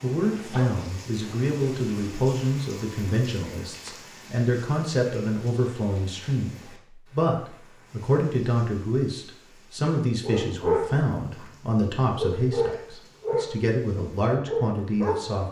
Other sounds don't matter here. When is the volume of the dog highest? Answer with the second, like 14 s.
11 s.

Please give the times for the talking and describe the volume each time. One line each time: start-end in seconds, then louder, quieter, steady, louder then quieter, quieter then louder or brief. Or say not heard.
0.0-15.4 steady.